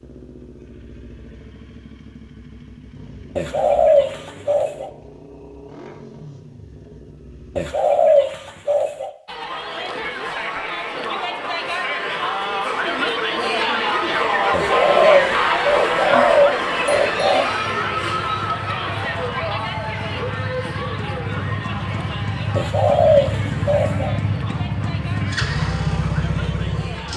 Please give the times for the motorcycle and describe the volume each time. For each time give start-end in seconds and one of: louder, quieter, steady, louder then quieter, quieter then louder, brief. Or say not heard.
0.0-7.8 steady
16.9-27.1 louder.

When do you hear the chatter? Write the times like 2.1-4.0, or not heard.
9.2-27.1.